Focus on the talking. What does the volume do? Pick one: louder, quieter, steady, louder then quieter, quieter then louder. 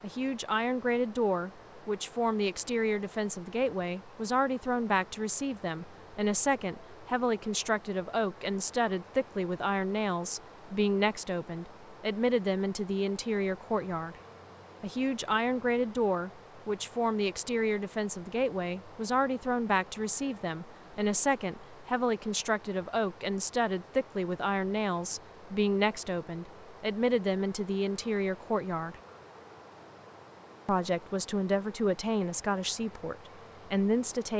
steady.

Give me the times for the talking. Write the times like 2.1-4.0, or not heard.
0.0-14.2, 14.8-29.0, 30.6-34.3.